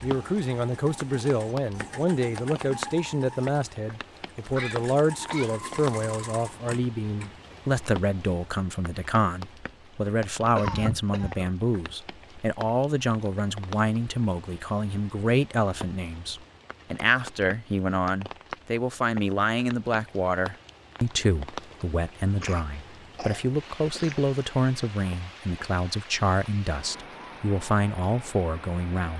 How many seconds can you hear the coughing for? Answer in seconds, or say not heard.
4 s.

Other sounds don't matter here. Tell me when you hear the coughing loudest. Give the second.
11 s.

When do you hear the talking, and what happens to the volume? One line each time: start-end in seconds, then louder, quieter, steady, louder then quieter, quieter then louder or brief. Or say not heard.
0.0-29.1 steady.